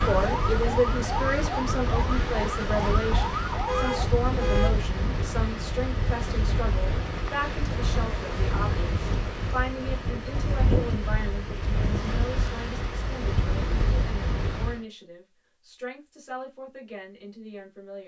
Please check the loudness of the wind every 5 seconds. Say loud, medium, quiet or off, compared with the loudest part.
loud, loud, loud, off.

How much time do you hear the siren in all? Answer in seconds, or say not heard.
4 s.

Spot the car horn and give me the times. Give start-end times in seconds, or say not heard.
3.6-4.8.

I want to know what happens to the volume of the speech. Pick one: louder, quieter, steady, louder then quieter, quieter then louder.
quieter.